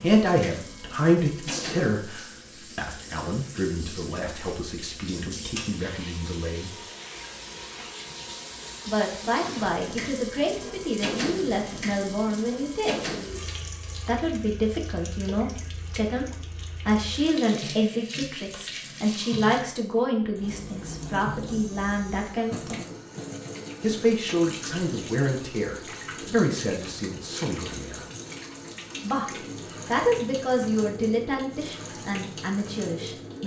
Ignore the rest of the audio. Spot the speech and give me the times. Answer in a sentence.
The speech can be heard from 0.0 to 6.7 s, from 8.8 to 13.1 s, from 14.1 to 16.2 s, from 16.9 to 22.8 s, from 23.8 to 28.0 s and from 29.0 to 33.4 s.